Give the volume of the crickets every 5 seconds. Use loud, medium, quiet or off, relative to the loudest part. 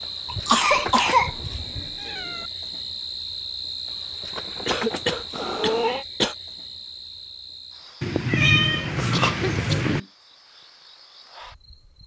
loud, medium, quiet.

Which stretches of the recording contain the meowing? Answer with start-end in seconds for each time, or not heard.
0.5-2.5, 5.3-6.0, 8.0-10.0.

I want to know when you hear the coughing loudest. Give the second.
1 s.